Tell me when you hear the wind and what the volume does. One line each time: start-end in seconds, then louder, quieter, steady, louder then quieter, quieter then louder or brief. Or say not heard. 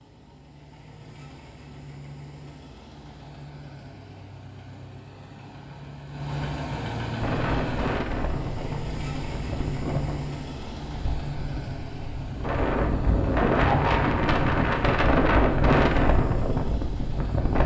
7.2-17.6 louder.